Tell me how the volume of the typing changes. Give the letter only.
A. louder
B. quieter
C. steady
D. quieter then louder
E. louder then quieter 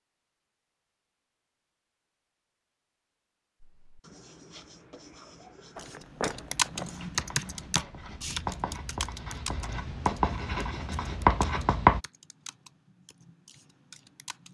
B.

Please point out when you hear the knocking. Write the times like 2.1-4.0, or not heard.
5.8-6.9.